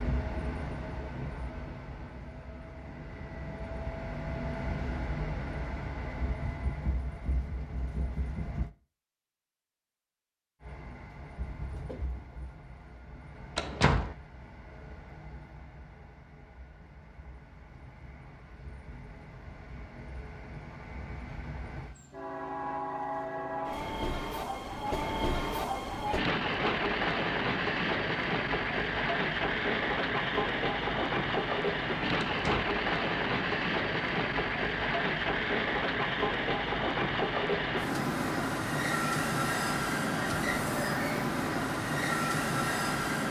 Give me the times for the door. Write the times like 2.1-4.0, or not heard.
13.6-14.2, 32.2-32.7.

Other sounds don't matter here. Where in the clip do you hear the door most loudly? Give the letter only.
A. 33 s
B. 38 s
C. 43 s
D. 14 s
D.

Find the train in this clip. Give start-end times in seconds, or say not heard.
0.0-8.7, 10.6-43.2.